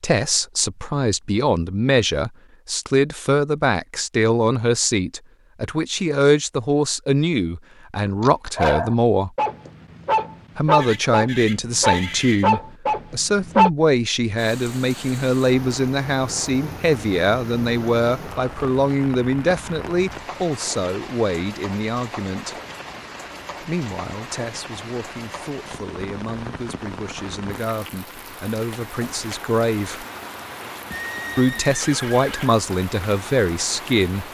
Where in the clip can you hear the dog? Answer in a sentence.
The dog can be heard from 8.2 to 13.7 s.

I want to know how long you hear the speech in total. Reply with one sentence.
The speech can be heard for 31 seconds in total.